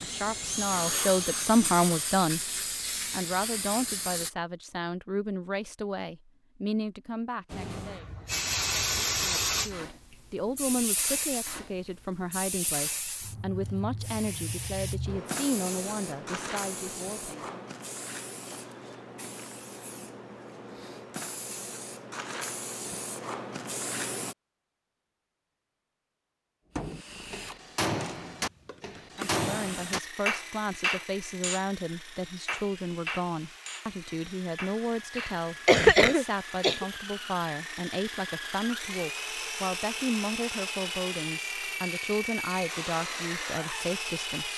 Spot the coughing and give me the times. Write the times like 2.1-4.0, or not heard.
35.1-36.9.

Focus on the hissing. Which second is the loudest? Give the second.
9 s.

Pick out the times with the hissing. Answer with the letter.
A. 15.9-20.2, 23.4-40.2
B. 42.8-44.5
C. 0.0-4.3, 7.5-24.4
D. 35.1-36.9
C.